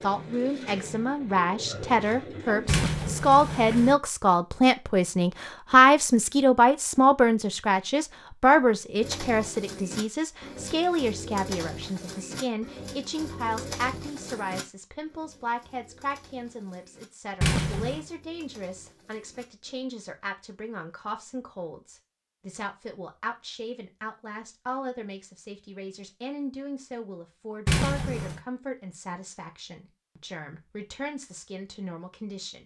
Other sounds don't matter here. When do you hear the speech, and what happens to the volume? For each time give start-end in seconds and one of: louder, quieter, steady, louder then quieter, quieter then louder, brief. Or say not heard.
0.0-32.6 quieter.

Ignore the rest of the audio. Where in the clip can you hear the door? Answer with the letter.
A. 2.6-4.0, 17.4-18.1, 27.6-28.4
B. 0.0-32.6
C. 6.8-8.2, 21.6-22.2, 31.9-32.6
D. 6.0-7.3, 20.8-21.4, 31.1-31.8
A.